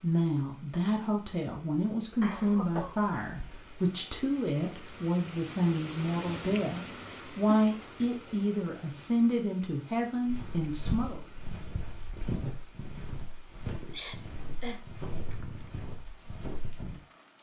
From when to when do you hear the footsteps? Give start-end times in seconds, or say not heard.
10.2-17.0.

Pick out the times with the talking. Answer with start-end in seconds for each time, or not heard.
0.0-11.2.